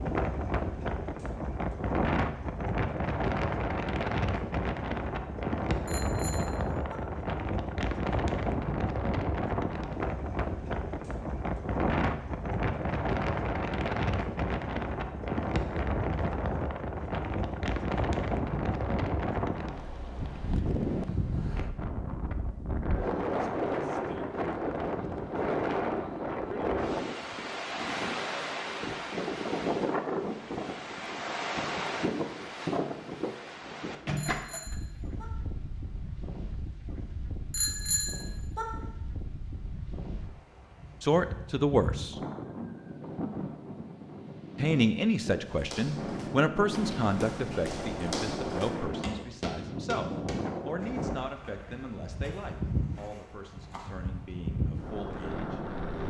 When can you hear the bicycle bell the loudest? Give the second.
38 s.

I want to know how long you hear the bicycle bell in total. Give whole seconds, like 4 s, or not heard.
3 s.